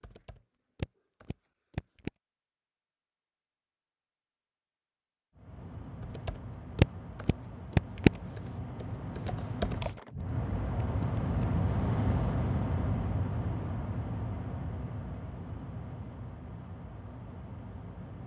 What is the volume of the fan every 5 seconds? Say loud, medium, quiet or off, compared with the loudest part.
off, medium, loud, medium.